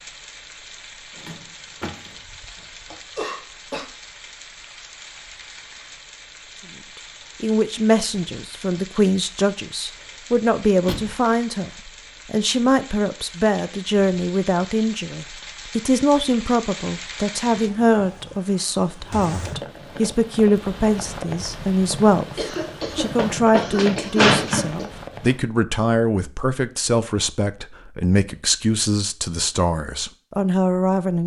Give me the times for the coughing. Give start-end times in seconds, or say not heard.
2.9-3.9, 22.4-24.9.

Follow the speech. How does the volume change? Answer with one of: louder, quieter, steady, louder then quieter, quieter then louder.
steady.